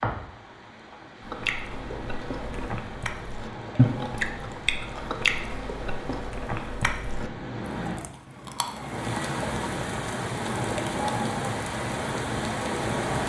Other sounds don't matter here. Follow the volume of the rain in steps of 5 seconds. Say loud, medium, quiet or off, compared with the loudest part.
medium, medium, loud.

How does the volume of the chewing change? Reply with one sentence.
The loudness of the chewing goes up, then down.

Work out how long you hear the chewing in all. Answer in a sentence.
The chewing can be heard for 8 seconds in total.